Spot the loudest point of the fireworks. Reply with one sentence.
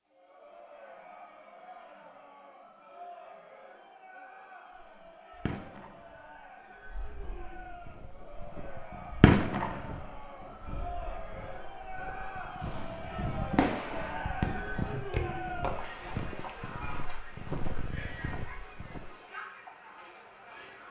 The loudest moment of the fireworks is at 9 seconds.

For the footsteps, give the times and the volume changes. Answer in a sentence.
You can hear the footsteps from 7.5 to 19.1 s, getting louder.